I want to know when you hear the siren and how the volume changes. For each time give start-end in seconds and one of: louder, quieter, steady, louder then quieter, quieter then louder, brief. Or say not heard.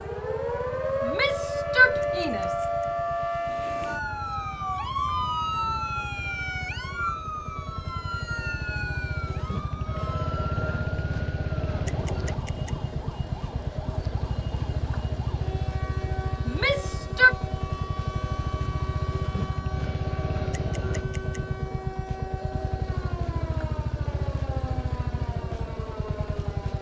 0.0-26.7 quieter.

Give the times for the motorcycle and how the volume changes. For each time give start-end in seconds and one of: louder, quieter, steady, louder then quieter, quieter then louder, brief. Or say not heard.
0.0-26.7 louder.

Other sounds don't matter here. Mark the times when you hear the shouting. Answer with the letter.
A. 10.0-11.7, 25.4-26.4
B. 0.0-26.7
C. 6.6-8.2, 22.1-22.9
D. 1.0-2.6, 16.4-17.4
D.